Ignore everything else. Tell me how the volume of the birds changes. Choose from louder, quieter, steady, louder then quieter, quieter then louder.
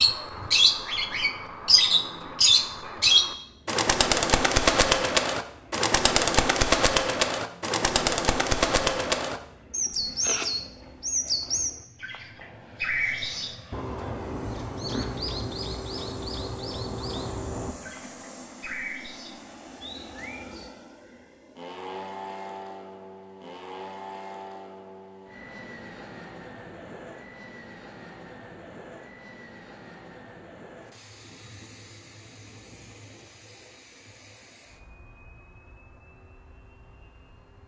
quieter.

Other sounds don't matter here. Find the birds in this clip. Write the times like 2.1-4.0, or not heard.
0.0-20.7.